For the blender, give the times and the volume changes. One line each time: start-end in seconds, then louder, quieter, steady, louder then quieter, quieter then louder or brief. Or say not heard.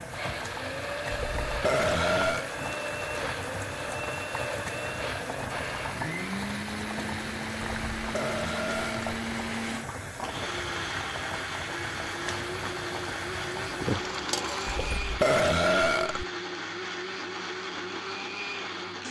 0.0-19.0 steady.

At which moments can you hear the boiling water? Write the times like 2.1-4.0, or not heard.
0.0-15.0.